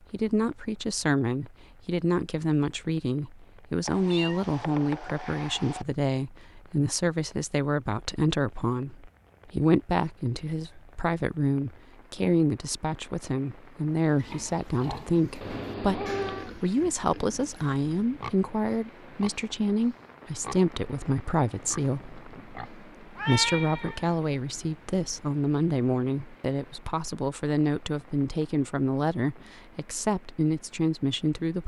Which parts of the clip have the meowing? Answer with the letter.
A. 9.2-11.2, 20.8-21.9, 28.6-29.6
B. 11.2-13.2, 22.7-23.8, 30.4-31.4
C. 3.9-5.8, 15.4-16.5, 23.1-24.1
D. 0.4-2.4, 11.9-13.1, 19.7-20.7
C.